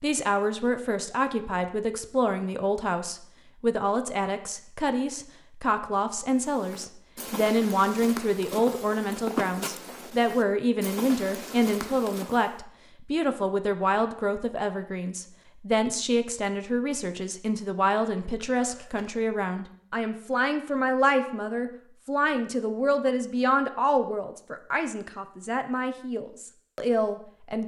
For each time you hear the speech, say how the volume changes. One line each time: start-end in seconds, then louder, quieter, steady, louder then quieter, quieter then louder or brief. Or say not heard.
0.0-27.6 steady.